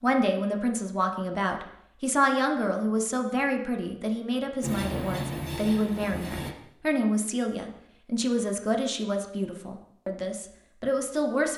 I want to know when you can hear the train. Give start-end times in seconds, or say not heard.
4.6-6.5.